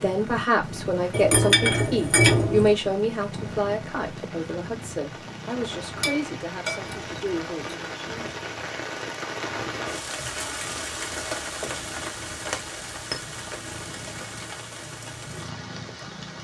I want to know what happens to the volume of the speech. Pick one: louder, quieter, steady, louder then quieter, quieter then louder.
quieter.